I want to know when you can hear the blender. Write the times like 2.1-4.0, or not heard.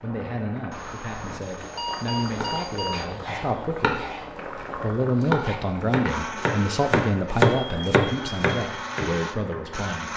6.0-10.1.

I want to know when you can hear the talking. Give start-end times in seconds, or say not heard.
0.0-4.0, 4.8-10.1.